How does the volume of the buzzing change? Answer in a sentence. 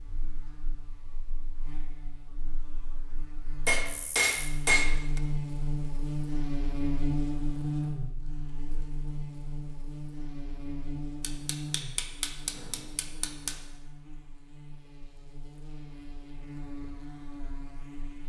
The loudness of the buzzing goes up, then down.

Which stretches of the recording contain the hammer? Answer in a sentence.
The hammer can be heard from 3.6 to 5.2 s and from 11.2 to 13.6 s.